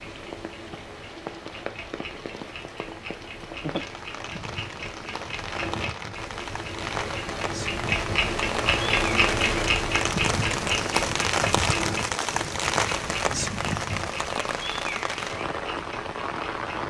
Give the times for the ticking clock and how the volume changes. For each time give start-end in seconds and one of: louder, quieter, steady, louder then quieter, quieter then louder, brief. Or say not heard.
0.0-16.8 louder then quieter.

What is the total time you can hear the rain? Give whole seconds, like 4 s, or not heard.
17 s.